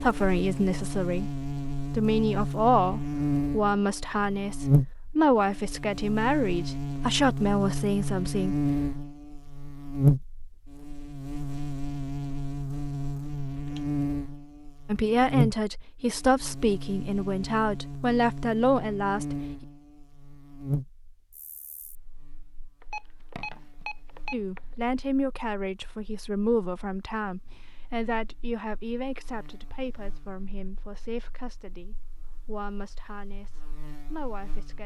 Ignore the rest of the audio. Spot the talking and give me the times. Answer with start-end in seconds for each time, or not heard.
0.0-8.6, 14.8-19.6, 24.3-34.8.